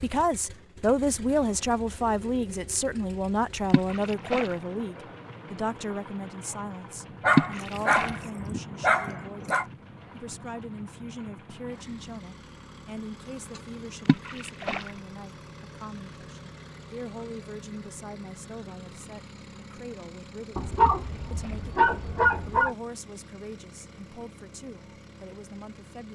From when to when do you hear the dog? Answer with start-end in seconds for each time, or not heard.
7.2-9.7, 20.6-22.8.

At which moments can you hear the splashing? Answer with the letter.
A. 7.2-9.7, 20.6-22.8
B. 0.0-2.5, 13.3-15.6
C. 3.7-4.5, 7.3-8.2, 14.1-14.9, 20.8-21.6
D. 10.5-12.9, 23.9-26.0
C.